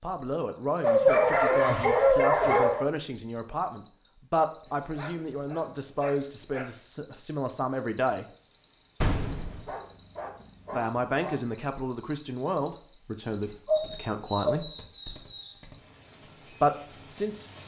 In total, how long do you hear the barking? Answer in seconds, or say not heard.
8 s.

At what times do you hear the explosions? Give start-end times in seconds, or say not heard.
9.0-9.7.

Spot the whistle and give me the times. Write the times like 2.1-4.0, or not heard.
not heard.